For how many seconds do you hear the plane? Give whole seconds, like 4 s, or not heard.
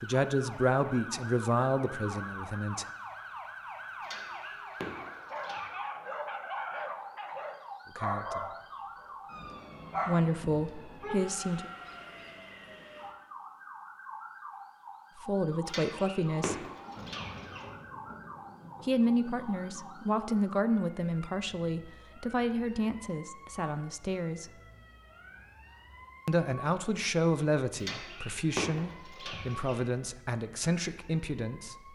not heard.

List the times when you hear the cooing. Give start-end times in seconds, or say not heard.
4.0-5.6, 15.7-17.6, 27.8-29.8.